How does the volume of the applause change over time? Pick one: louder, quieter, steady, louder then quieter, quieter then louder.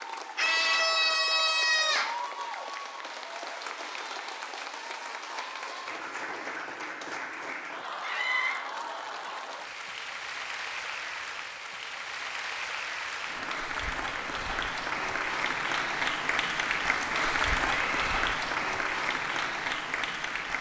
louder.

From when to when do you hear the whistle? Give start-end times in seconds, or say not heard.
not heard.